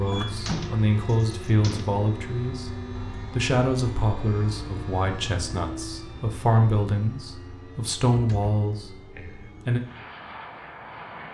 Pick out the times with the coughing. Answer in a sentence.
You can hear the coughing from 0.1 to 0.6 s.